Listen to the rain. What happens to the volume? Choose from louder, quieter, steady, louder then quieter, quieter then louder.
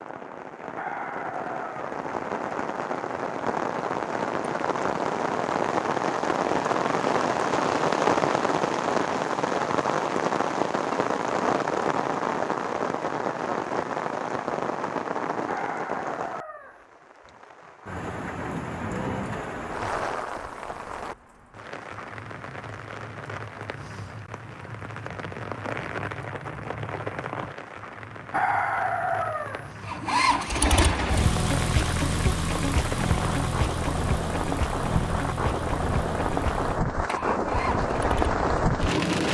quieter then louder.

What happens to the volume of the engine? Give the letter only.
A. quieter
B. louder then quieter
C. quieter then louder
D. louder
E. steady
A.